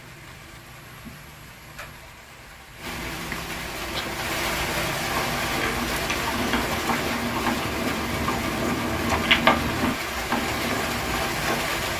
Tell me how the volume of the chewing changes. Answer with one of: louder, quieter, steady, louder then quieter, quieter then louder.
louder then quieter.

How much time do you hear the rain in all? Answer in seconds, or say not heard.
12 s.